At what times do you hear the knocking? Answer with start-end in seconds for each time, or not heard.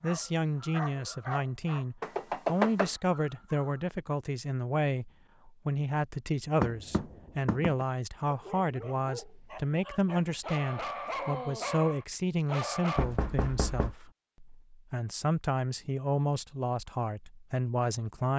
2.0-2.9, 6.6-7.8, 12.9-13.9.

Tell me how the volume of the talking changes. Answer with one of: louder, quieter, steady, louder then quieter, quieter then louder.
steady.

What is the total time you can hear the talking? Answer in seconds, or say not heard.
18 s.